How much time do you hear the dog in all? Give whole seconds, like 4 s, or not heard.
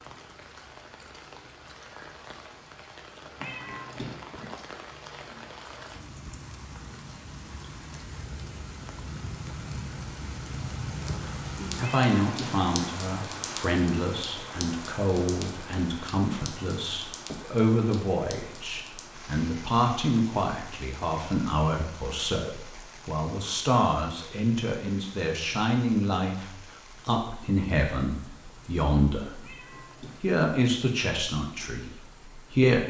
not heard.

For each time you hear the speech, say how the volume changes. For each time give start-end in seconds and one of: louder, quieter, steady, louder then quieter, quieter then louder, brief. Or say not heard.
11.1-32.8 steady.